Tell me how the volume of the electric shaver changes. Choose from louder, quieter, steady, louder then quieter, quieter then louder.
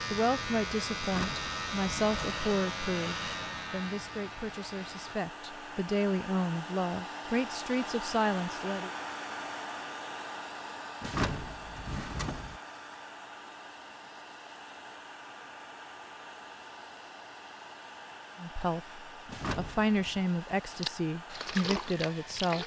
quieter.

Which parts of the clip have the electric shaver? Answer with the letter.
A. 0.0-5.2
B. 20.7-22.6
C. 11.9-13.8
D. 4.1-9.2
A.